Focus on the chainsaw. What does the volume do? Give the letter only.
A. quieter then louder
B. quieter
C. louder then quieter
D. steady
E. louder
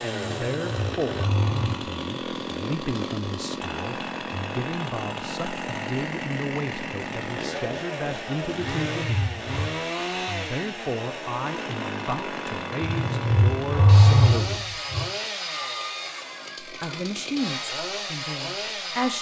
D.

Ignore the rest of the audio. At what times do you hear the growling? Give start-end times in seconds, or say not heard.
0.2-1.9, 8.6-9.7, 12.8-15.1.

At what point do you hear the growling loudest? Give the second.
14 s.